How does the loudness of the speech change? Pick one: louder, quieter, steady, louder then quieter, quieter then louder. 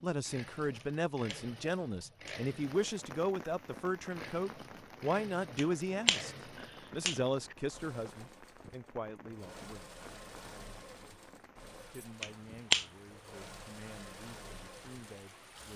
quieter.